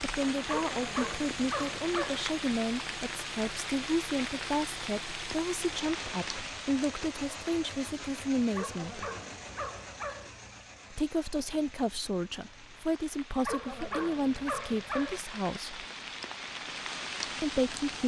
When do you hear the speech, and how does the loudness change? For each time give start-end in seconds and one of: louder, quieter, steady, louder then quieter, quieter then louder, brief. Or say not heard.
0.0-9.1 steady
10.9-15.8 steady
17.4-18.0 brief.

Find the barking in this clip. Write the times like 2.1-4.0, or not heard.
0.5-2.2, 8.5-10.3, 13.4-15.2.